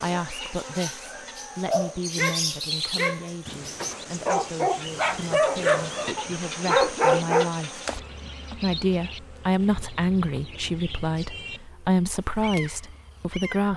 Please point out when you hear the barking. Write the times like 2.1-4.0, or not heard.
1.1-7.5.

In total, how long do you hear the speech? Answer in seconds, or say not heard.
13 s.